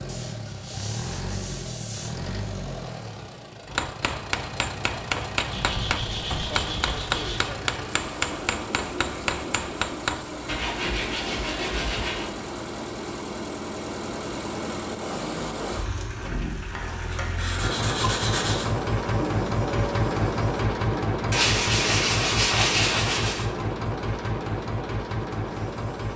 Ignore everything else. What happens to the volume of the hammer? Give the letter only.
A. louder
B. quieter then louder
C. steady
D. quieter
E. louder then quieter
C.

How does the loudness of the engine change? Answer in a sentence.
The loudness of the engine goes up.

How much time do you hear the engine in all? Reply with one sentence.
You can hear the engine for 26 seconds altogether.